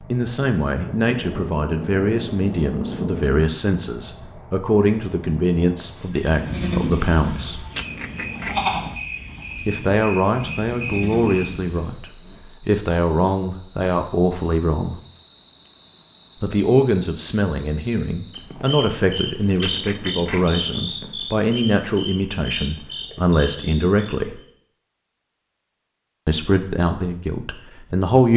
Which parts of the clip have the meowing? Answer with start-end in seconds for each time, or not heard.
7.7-8.9, 19.6-20.6.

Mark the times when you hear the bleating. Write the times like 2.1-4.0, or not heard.
6.2-11.9.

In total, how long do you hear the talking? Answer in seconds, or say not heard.
23 s.